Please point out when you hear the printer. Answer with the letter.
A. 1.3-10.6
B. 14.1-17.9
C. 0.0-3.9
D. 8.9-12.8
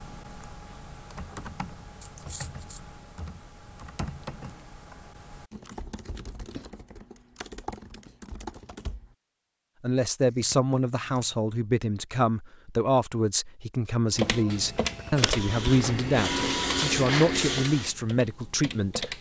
B.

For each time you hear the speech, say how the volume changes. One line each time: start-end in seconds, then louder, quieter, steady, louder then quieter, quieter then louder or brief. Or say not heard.
9.8-19.1 steady.